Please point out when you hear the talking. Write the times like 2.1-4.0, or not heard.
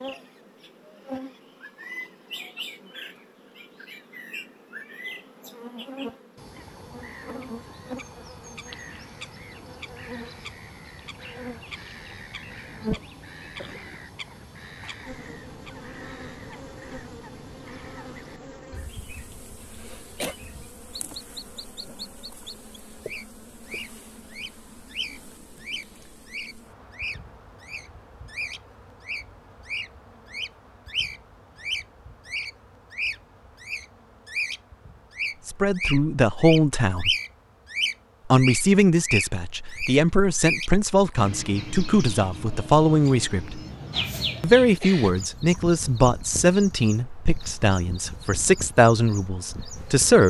35.5-37.1, 38.2-43.6, 44.4-50.2.